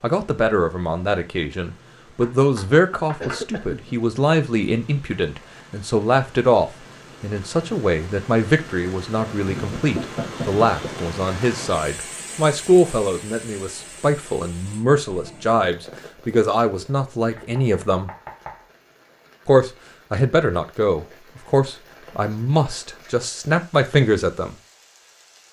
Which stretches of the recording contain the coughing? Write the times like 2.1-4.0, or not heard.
3.2-3.9.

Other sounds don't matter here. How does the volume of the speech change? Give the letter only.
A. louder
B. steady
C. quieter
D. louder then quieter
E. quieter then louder
B.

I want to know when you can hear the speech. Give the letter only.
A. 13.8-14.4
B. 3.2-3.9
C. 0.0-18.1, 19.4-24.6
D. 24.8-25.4
C.